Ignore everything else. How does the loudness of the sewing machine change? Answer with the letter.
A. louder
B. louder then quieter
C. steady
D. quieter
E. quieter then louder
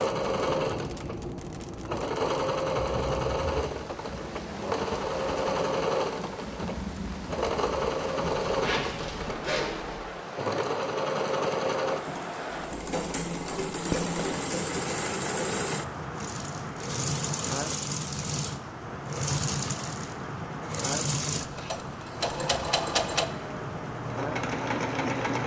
C.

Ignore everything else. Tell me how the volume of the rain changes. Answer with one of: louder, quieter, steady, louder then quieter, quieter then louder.
steady.